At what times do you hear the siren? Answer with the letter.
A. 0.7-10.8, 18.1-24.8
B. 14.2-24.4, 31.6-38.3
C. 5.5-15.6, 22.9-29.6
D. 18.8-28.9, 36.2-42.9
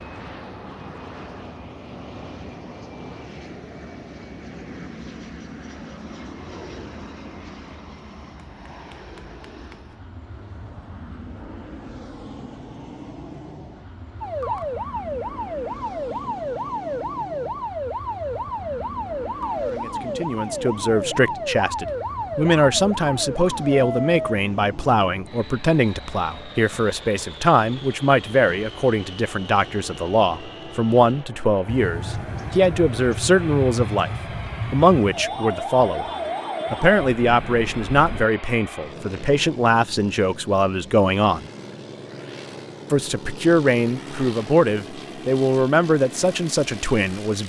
B.